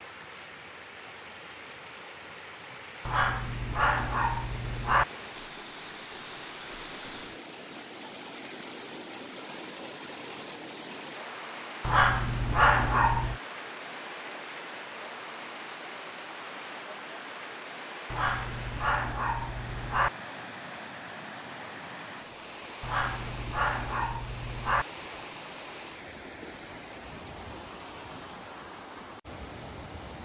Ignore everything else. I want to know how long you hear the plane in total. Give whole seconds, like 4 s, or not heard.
not heard.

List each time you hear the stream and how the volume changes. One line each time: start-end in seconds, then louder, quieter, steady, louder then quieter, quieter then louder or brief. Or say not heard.
0.0-30.1 steady.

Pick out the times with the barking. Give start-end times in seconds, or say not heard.
3.0-5.0, 11.8-13.3, 18.1-20.1, 22.8-24.9.